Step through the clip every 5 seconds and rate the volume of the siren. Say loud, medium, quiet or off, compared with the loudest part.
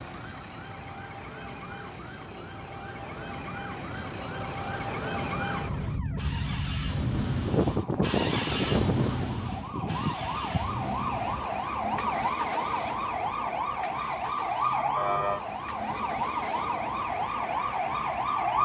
medium, loud, loud, loud.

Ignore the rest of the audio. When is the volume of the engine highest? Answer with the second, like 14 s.
9 s.